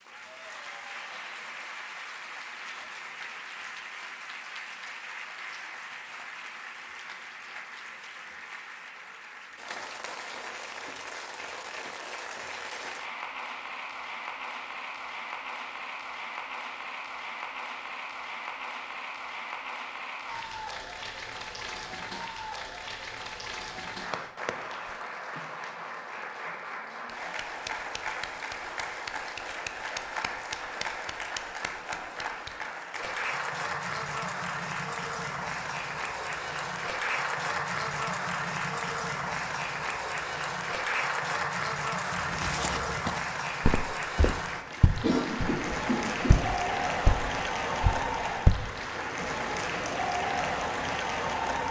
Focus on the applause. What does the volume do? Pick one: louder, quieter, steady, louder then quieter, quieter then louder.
louder.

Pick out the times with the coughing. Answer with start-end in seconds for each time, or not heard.
45.0-46.4.